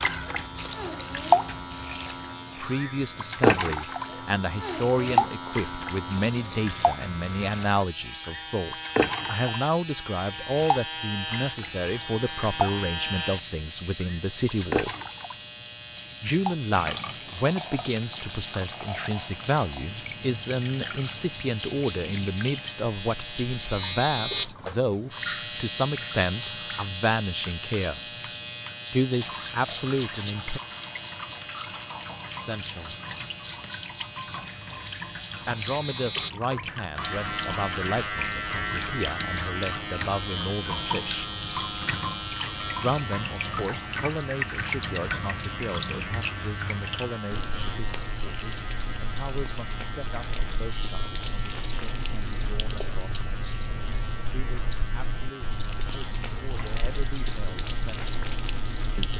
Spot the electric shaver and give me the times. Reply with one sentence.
The electric shaver can be heard from 0.0 to 59.1 s.